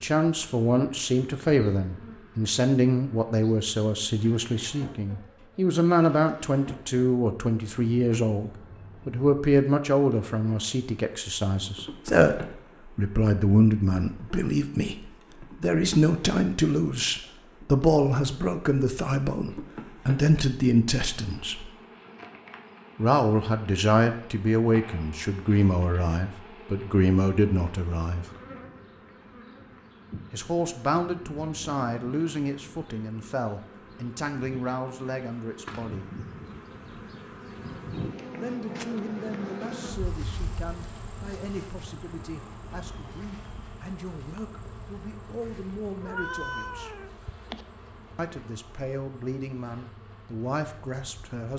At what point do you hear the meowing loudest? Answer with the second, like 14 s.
46 s.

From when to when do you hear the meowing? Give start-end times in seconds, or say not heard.
46.0-47.9.